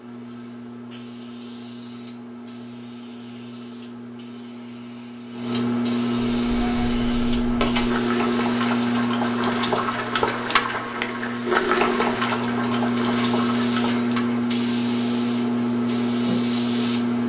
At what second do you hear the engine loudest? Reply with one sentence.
The loudest moment of the engine is at 12 seconds.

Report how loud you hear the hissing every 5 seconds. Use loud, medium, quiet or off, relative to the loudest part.
quiet, loud, loud, loud.